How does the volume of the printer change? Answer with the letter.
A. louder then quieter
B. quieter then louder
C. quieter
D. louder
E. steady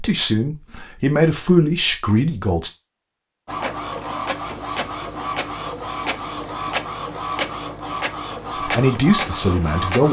E.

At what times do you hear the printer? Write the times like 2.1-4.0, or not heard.
3.5-10.0.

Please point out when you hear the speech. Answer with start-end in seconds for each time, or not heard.
0.0-2.7, 8.6-10.0.